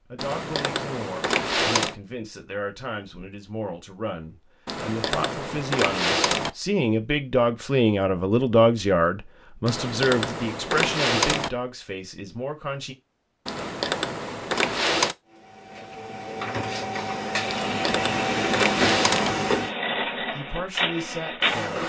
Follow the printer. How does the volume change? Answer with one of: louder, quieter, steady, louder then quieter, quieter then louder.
louder then quieter.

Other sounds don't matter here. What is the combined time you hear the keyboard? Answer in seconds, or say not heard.
9 s.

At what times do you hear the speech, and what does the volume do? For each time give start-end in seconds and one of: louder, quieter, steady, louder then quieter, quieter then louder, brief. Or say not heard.
0.1-12.9 louder then quieter
20.2-21.8 brief.